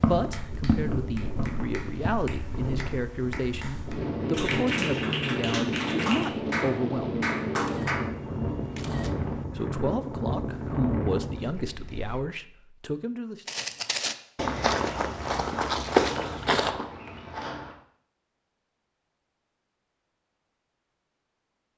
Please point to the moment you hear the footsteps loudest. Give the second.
16 s.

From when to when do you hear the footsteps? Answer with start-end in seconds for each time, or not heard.
0.0-2.2, 13.4-17.8.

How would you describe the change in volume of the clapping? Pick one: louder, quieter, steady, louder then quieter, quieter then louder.
louder.